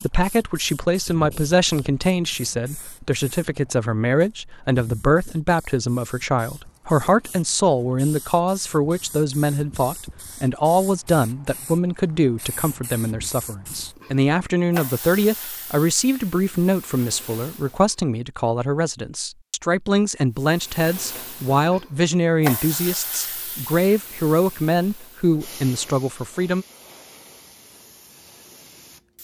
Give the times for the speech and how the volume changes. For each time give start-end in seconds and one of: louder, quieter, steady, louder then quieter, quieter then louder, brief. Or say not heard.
0.0-26.6 steady.